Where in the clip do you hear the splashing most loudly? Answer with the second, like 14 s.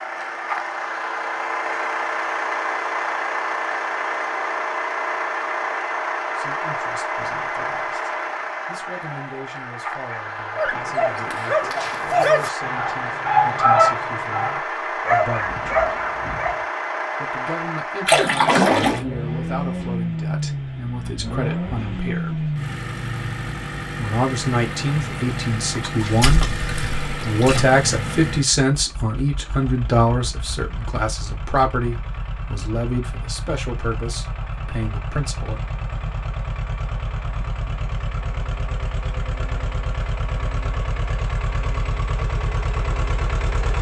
19 s.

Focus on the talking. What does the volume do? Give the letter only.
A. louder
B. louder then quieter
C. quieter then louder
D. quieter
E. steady
B.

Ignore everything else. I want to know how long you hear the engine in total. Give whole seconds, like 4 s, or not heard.
44 s.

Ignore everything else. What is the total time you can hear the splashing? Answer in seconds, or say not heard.
3 s.